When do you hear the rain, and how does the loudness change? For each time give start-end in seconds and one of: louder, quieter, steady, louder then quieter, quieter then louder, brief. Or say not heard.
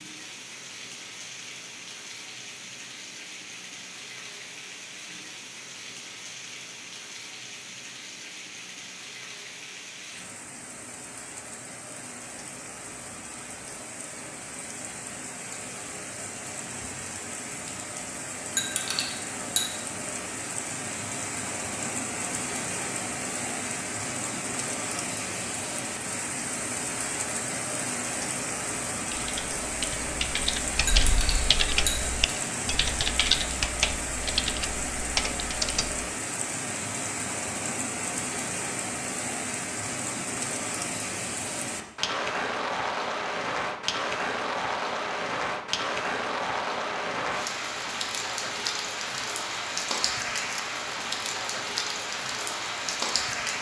0.0-53.5 louder.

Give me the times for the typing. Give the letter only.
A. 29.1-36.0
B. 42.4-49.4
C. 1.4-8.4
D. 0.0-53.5
A.